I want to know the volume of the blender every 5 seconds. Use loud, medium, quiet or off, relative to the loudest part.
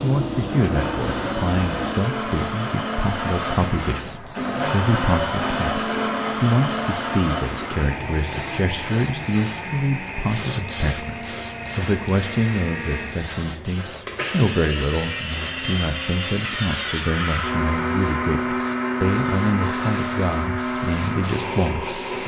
loud, loud, medium, loud, loud.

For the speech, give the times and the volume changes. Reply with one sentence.
You can hear the speech from 0.0 to 22.2 s, at a steady volume.